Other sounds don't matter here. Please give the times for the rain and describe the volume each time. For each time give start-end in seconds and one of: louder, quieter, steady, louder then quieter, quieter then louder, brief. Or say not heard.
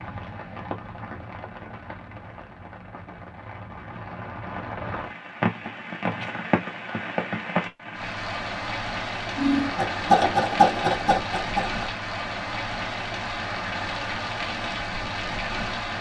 0.0-15.9 louder.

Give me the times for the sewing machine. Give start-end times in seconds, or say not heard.
9.3-11.8.